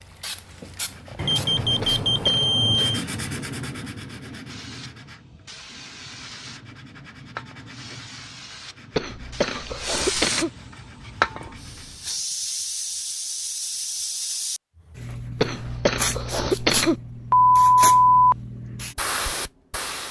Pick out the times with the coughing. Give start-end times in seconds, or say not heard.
1.8-2.5, 8.9-10.5, 15.4-16.9.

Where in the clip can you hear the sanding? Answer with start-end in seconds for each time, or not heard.
0.7-12.2.